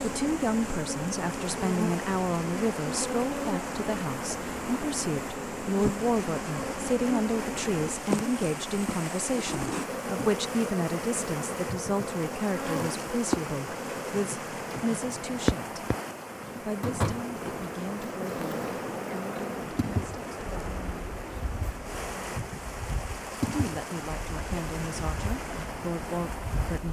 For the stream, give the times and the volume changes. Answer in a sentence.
You can hear the stream from 0.0 to 26.8 s, at a steady volume.